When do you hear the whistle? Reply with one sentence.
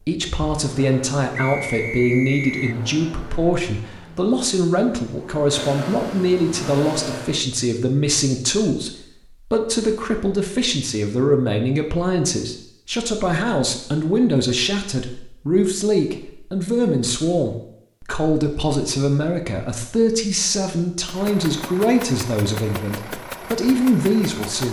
The whistle can be heard from 1.3 to 2.8 s.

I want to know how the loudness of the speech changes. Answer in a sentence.
The volume of the speech stays about the same.